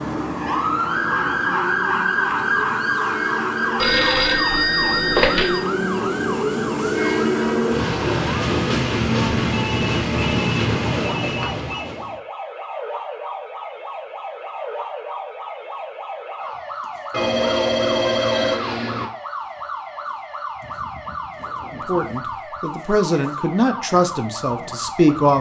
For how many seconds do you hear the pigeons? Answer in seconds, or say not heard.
not heard.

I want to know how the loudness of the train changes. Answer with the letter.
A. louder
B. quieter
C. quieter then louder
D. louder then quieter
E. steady
A.